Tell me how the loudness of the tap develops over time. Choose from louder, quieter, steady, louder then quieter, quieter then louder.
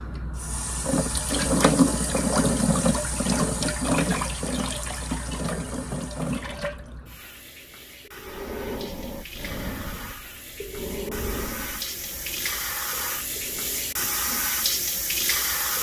quieter then louder.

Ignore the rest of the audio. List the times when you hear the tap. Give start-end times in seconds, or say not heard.
0.0-15.7.